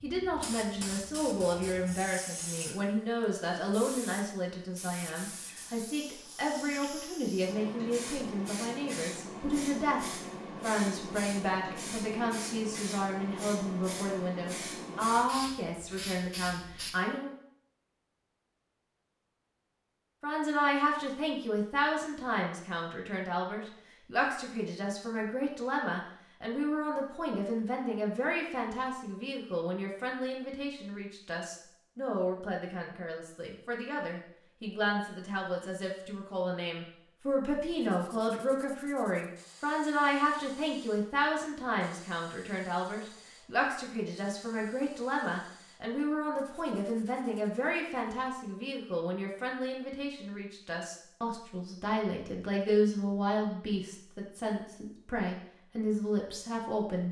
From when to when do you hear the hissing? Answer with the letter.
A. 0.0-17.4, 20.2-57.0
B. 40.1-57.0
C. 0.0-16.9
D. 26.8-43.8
C.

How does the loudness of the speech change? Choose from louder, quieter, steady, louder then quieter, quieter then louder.
steady.